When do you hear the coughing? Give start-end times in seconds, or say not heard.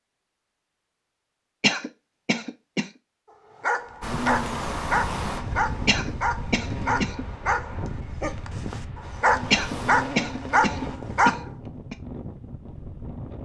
1.6-2.9, 5.8-7.2, 9.5-11.9.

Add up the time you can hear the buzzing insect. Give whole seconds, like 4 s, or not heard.
5 s.